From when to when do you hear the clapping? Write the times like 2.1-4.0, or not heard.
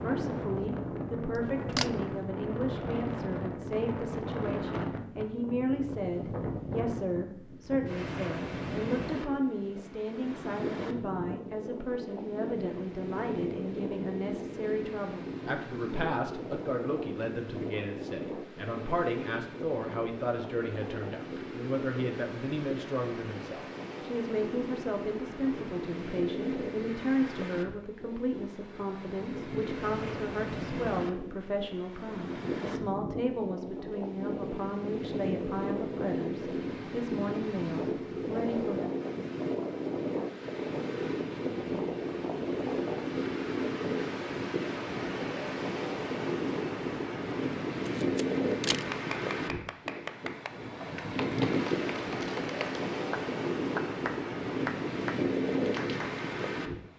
48.5-56.2.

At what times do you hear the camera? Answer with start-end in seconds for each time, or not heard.
1.4-2.1, 47.9-48.9.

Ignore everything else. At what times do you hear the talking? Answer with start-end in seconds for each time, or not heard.
0.0-38.9.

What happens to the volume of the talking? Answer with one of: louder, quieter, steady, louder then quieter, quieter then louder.
steady.